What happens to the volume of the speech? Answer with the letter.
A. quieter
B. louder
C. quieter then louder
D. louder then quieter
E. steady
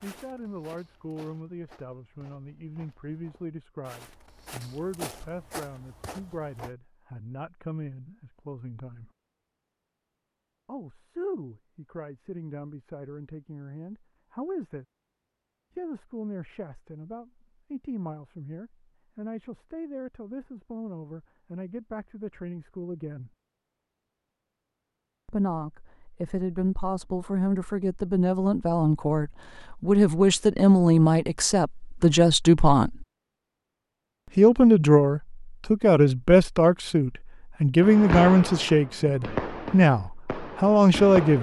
B.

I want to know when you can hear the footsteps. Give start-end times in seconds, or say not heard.
0.0-6.7.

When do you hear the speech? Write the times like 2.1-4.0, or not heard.
0.0-9.1, 10.7-14.8, 15.8-23.3, 25.2-33.0, 34.4-41.3.